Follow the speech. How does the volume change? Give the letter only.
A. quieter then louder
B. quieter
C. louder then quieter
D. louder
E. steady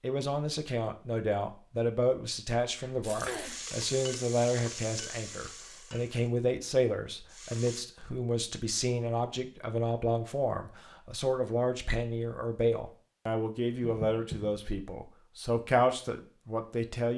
E.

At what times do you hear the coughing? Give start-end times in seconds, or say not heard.
2.8-3.6, 13.8-14.6.